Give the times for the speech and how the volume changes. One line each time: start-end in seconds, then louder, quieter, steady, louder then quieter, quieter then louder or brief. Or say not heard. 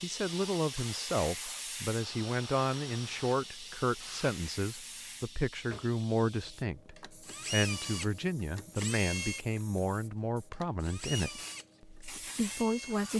0.0-13.1 steady.